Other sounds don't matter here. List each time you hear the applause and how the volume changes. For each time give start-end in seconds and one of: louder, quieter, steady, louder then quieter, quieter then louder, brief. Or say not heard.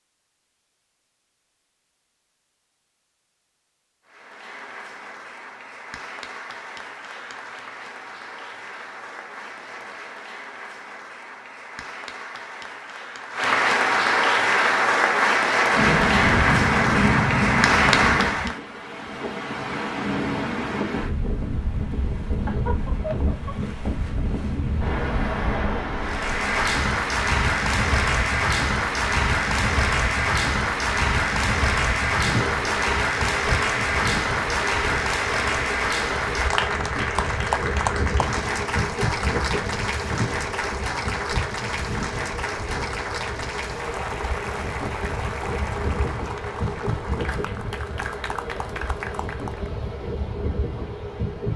4.0-18.6 louder
26.0-49.8 quieter.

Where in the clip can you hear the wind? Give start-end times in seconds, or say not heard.
15.7-51.5.